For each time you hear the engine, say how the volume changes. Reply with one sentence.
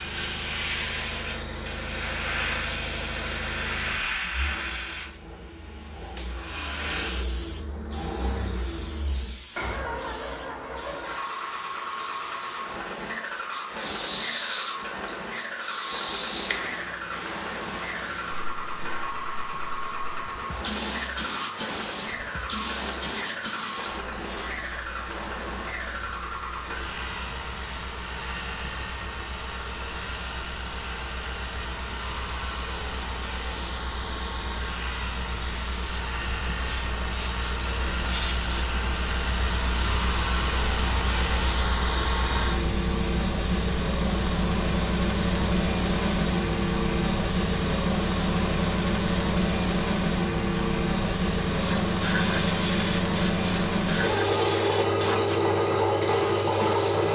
You can hear the engine from 0.0 to 57.1 s, getting louder.